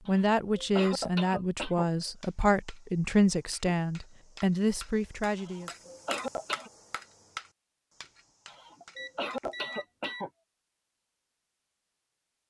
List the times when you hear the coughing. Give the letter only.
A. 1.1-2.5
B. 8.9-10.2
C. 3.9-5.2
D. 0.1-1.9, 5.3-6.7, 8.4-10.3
D.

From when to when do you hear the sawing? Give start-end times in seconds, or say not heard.
not heard.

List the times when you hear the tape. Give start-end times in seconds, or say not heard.
not heard.